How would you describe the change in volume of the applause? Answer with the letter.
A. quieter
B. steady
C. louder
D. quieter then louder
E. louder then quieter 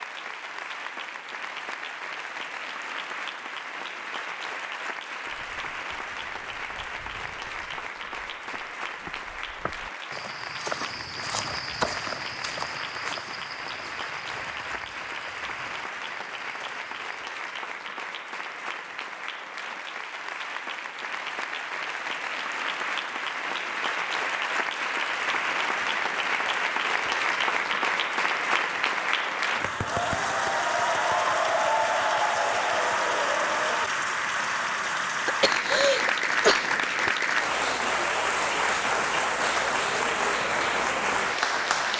C.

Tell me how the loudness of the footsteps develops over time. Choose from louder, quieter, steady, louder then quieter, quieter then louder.
louder then quieter.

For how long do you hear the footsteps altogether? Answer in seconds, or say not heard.
12 s.